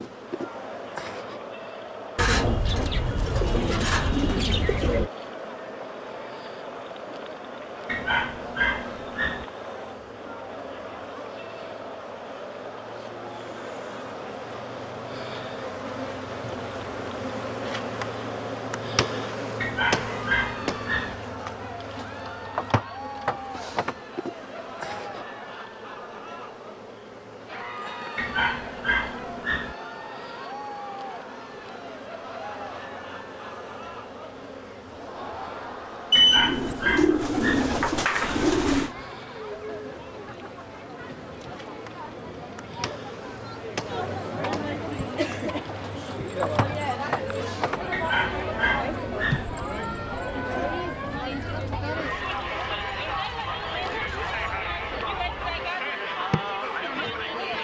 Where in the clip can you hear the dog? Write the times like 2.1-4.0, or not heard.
7.8-9.4, 19.6-21.1, 28.1-29.8, 36.1-37.7, 47.9-49.5.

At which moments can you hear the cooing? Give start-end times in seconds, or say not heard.
2.1-5.1, 36.1-38.9.